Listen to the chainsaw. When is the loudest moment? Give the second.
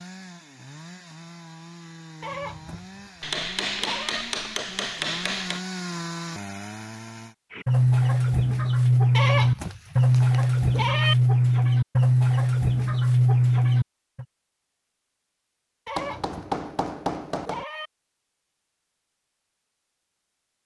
6 s.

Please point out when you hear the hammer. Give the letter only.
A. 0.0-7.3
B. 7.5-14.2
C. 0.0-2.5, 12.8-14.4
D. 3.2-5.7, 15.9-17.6
D.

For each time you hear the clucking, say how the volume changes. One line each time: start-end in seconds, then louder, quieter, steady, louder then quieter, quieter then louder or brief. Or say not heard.
7.5-14.2 steady.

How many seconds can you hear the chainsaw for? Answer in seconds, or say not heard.
7 s.